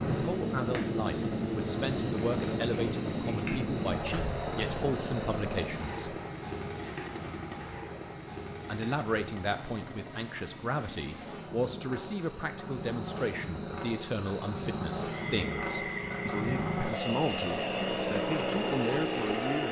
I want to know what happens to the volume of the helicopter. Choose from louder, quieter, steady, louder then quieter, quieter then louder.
quieter then louder.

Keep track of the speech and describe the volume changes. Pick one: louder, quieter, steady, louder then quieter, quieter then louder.
steady.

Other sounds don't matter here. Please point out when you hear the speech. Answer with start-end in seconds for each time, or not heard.
0.1-6.2, 8.7-19.6.